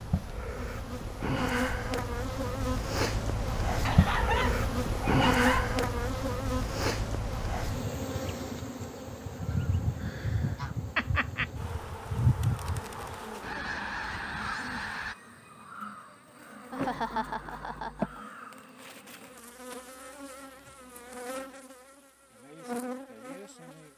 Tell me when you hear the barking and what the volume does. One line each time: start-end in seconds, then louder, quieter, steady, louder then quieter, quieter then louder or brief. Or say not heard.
not heard.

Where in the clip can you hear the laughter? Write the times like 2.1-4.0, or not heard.
3.9-5.7, 10.9-11.4, 16.7-18.2.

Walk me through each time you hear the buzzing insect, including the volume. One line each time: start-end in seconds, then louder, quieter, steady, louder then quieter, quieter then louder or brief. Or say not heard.
0.0-23.9 quieter.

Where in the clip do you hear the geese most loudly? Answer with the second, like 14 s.
12 s.